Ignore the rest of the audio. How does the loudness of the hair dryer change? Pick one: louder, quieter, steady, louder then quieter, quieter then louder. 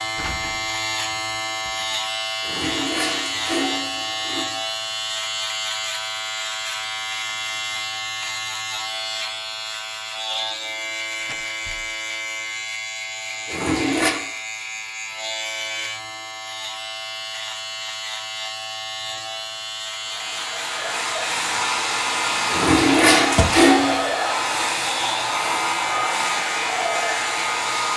steady.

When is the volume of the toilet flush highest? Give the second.
23 s.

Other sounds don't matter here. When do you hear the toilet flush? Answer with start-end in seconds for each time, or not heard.
2.4-4.5, 13.4-14.2, 22.5-24.0.